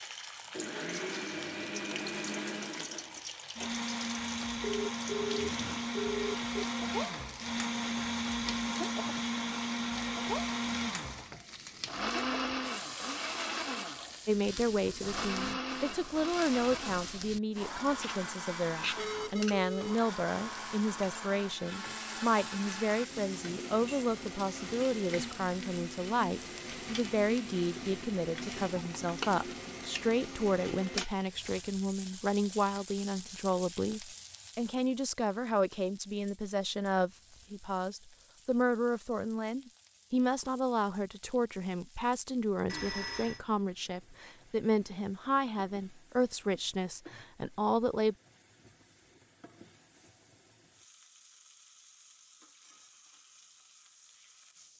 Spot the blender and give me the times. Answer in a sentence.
The blender can be heard from 0.0 to 31.1 s.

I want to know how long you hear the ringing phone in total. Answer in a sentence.
The ringing phone can be heard for 4 seconds in total.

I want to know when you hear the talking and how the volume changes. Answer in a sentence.
You can hear the talking from 14.2 to 48.1 s, at a steady volume.